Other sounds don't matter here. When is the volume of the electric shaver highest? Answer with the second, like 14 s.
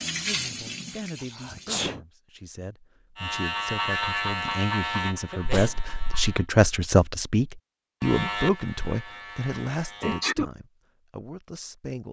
4 s.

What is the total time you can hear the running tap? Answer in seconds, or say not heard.
2 s.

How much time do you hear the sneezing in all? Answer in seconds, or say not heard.
2 s.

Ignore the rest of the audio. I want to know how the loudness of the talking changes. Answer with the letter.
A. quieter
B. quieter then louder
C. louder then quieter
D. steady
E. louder
C.